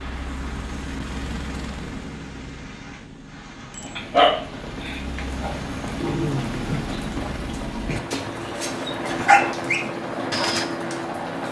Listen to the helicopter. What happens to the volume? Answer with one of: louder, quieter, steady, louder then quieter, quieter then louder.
quieter then louder.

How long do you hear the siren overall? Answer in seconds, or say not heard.
not heard.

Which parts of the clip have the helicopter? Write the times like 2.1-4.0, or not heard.
0.0-11.4.